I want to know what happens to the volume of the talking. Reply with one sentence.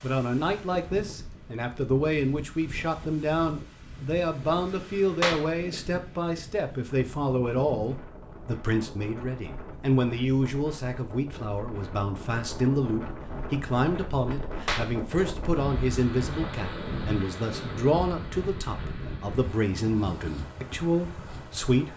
The loudness of the talking stays about the same.